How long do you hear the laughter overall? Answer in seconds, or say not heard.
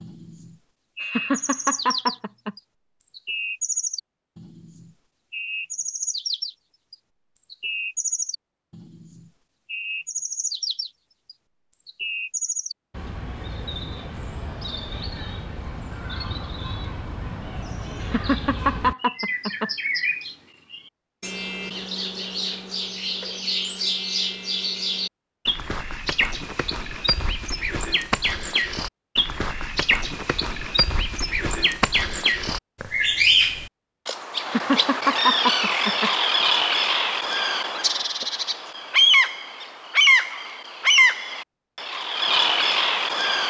5 s.